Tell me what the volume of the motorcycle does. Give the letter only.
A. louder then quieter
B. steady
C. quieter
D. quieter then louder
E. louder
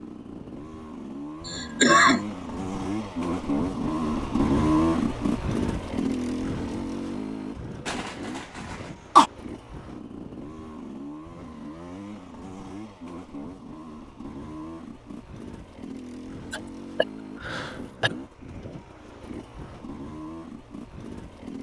C.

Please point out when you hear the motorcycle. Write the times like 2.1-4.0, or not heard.
0.0-21.5.